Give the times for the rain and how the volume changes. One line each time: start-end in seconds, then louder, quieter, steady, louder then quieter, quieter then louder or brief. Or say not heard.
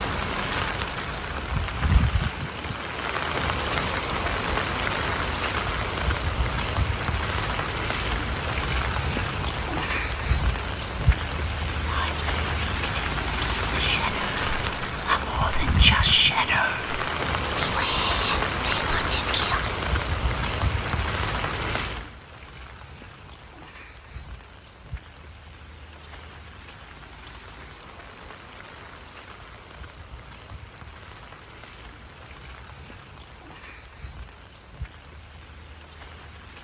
0.0-36.5 quieter.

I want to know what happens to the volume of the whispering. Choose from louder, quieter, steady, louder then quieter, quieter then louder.
louder then quieter.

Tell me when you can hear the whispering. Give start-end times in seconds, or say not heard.
11.8-19.7.